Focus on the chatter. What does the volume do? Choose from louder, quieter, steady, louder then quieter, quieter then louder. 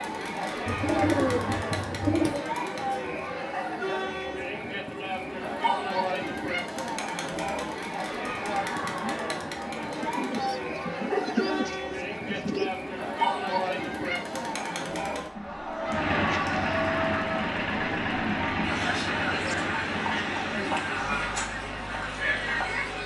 steady.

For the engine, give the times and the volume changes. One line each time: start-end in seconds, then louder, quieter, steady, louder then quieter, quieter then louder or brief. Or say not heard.
15.8-23.0 quieter.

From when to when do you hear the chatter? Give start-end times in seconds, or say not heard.
0.0-23.0.